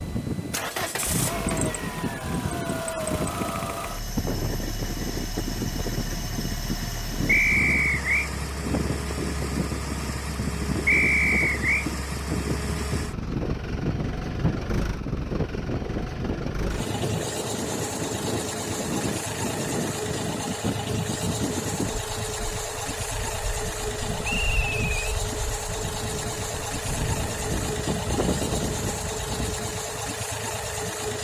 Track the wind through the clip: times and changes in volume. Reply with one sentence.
You can hear the wind from 0.0 to 30.9 s, at a steady volume.